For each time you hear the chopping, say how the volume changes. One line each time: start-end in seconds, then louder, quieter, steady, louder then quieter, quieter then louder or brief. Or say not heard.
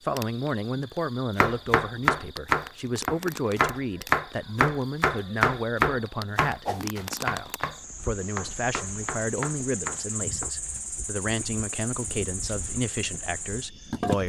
1.4-10.5 quieter.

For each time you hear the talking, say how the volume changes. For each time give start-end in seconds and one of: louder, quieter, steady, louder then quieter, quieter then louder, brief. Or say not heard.
0.0-14.2 steady.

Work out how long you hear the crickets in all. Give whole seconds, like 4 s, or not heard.
14 s.